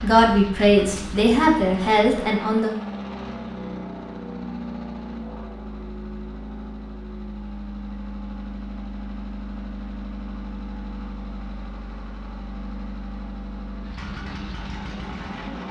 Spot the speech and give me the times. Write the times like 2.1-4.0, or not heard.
0.0-2.7.